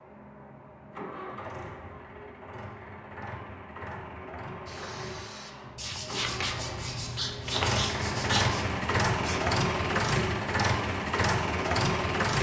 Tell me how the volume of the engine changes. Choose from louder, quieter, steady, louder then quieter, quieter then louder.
louder.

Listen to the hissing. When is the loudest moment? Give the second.
8 s.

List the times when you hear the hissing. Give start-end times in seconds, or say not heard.
4.7-9.6.